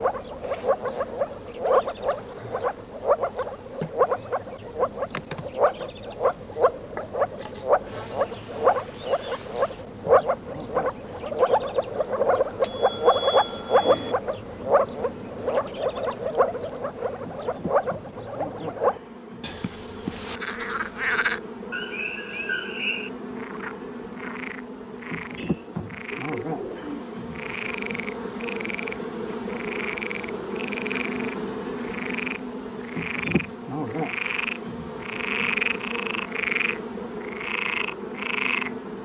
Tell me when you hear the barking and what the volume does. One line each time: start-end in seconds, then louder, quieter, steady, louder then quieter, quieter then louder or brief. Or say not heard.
not heard.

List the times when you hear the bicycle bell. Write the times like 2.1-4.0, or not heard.
12.6-14.2.